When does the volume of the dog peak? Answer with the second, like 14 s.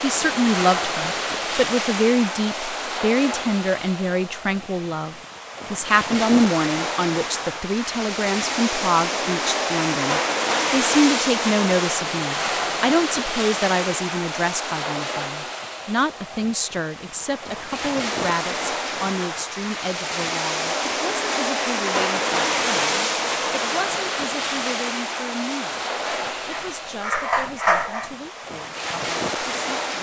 28 s.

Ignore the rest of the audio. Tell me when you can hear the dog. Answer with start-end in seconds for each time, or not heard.
26.0-28.1.